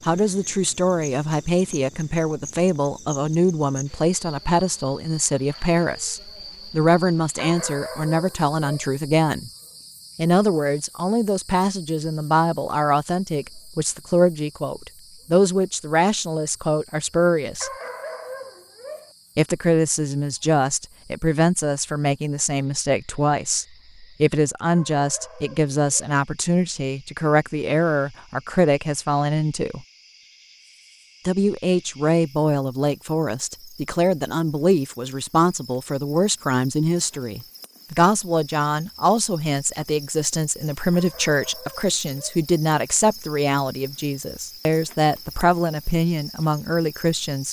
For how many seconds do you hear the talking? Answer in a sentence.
The talking can be heard for 44 seconds in total.